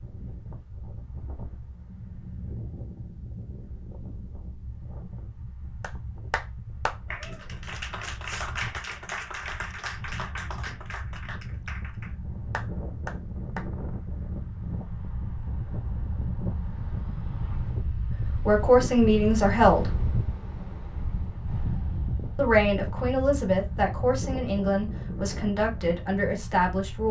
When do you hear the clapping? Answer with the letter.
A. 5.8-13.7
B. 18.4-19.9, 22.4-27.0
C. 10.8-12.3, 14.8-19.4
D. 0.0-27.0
A.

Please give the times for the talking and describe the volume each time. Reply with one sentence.
You can hear the talking briefly from 18.4 to 19.9 s; and from 22.4 to 27.0 s, at a steady volume.